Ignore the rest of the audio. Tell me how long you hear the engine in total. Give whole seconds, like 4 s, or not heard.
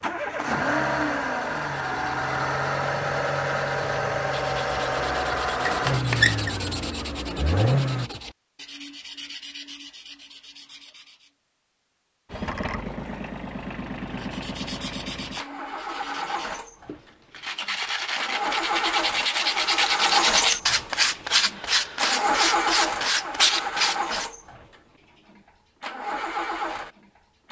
23 s.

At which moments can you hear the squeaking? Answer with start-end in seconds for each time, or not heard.
5.7-6.5.